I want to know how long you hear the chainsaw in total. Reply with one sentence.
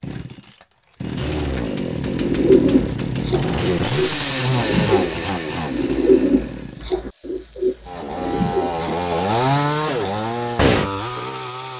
You can hear the chainsaw for 12 seconds altogether.